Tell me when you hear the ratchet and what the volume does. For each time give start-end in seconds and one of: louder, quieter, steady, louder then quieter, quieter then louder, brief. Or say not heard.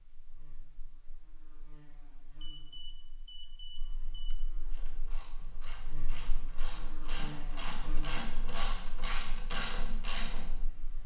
4.7-10.7 louder.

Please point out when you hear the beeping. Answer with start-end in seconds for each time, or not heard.
2.4-4.3.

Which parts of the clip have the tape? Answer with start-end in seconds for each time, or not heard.
not heard.